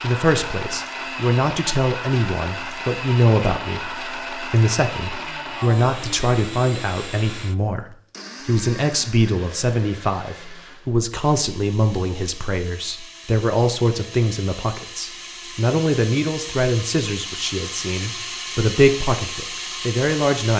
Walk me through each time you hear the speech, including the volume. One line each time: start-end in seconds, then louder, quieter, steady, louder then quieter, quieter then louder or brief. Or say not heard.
0.0-20.5 steady.